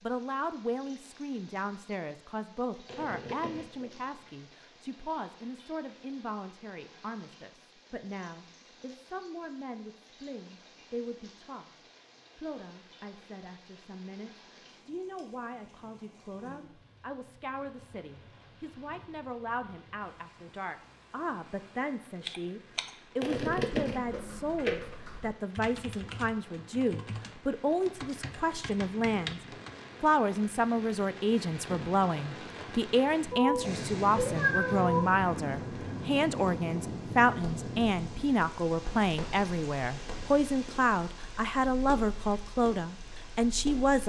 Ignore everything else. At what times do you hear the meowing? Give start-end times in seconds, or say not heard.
33.3-35.0.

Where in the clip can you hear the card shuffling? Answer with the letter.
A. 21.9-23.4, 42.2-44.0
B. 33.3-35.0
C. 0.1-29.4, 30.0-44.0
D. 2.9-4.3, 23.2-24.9
D.